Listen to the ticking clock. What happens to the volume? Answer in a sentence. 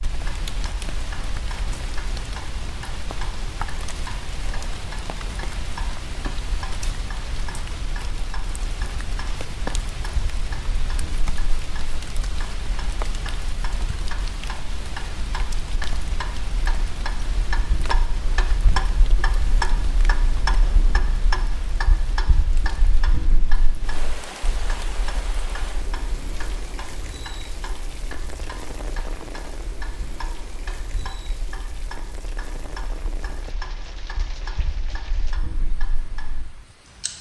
The volume of the ticking clock goes up, then down.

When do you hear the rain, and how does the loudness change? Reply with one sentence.
The rain can be heard from 0.0 to 37.1 s, getting quieter.